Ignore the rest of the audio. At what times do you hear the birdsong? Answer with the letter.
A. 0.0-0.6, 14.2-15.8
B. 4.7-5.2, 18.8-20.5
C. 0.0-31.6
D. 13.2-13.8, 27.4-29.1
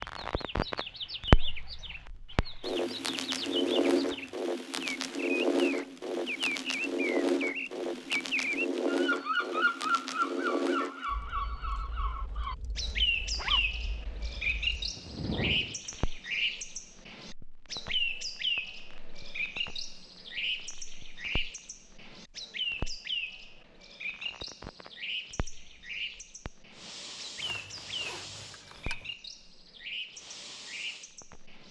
C.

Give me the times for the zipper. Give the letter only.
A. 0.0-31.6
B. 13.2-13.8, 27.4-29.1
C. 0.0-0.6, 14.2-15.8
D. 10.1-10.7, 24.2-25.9
B.